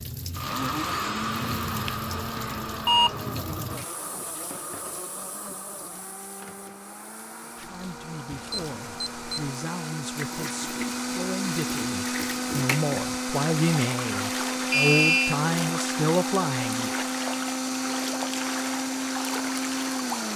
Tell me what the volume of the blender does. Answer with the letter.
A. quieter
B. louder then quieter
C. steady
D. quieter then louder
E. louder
D.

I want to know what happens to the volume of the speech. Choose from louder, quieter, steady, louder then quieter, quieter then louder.
louder.